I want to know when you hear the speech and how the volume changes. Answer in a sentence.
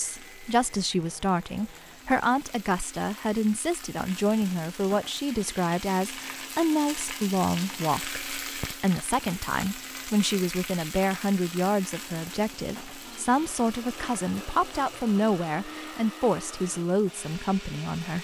The speech can be heard from 0.0 to 18.1 s, at a steady volume.